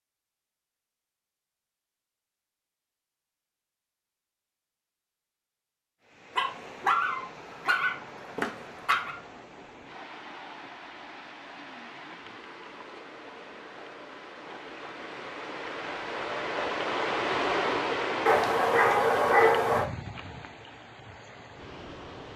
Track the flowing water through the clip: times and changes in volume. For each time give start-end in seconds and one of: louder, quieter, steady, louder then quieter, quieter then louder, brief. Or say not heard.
6.0-22.3 louder then quieter.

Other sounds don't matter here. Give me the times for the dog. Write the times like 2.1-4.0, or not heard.
6.3-9.2, 18.2-19.9.